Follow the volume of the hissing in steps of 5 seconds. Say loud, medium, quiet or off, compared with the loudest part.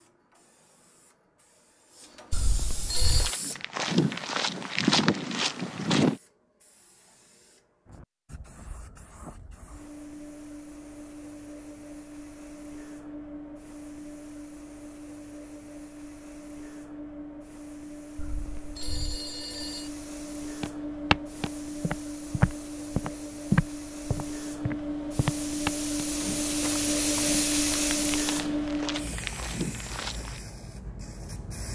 quiet, quiet, quiet, quiet, medium, loud, quiet.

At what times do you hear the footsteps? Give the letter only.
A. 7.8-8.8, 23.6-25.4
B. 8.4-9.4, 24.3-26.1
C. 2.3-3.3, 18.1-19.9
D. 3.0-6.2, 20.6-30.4
D.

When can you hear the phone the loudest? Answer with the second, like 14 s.
3 s.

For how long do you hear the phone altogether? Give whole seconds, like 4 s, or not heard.
3 s.